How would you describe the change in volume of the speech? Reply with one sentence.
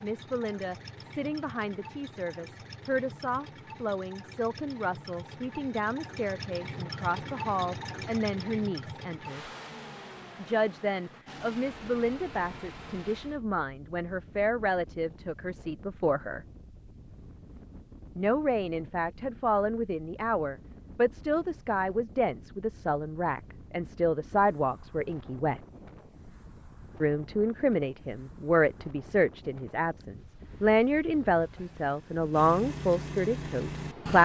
The volume of the speech goes up.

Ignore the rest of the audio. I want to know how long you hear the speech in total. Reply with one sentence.
The speech can be heard for 30 seconds in total.